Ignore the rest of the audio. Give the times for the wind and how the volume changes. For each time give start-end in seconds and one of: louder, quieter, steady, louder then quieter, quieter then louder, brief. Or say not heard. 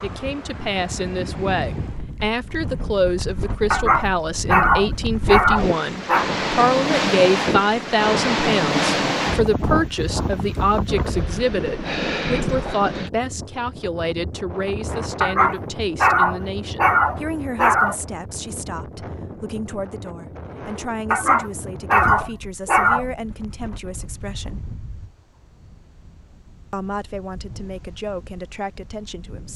0.0-29.5 louder then quieter.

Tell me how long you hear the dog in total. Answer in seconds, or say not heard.
7 s.